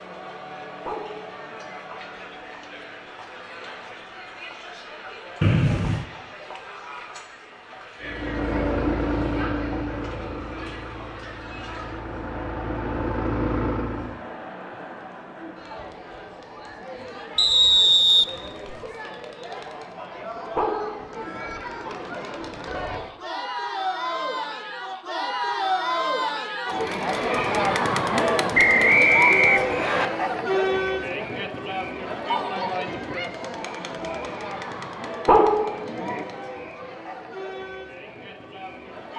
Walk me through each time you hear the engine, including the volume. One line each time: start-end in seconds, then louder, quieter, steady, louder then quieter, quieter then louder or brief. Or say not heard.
8.0-14.2 quieter then louder.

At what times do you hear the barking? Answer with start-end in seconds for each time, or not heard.
0.8-1.8, 20.6-21.5, 35.2-36.2.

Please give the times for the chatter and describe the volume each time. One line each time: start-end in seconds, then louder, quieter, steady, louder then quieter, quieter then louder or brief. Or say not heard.
0.0-39.1 louder then quieter.